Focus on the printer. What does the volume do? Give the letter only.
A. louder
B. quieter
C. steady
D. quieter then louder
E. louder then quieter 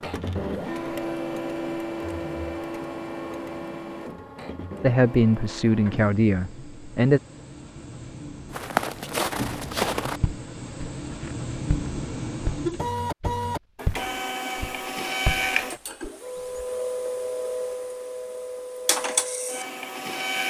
D.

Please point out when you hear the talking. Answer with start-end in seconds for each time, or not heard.
4.8-7.2.